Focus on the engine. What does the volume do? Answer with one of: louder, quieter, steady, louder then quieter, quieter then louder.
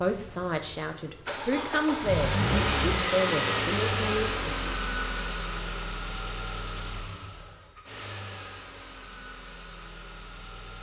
louder then quieter.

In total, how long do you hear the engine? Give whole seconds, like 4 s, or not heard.
11 s.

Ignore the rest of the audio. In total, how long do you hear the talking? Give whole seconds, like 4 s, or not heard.
5 s.